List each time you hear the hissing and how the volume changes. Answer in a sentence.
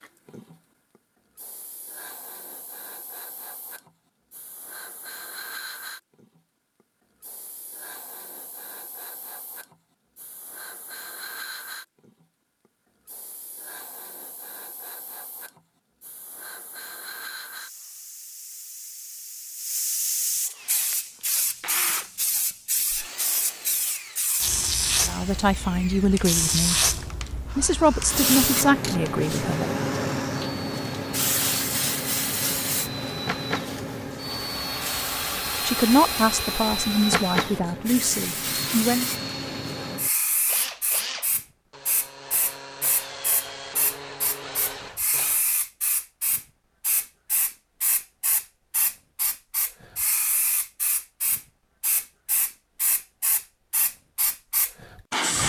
The hissing can be heard from 0.0 to 55.4 s, getting louder then quieter.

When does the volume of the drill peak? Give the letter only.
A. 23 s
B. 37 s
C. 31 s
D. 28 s
B.